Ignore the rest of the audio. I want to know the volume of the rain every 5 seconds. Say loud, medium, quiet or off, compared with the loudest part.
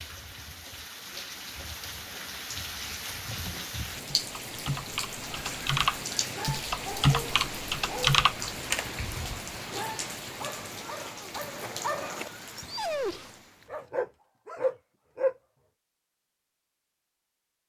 loud, loud, medium, off.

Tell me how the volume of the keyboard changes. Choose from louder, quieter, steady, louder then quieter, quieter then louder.
louder.